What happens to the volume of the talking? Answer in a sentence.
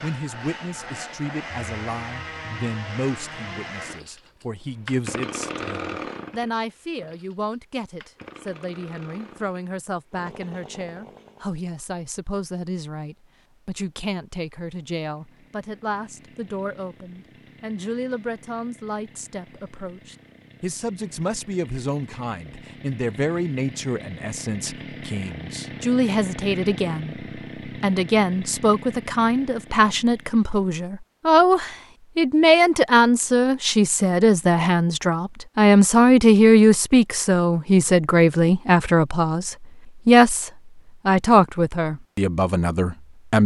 The loudness of the talking goes up.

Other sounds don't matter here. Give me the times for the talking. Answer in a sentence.
The talking can be heard from 0.0 to 43.4 s.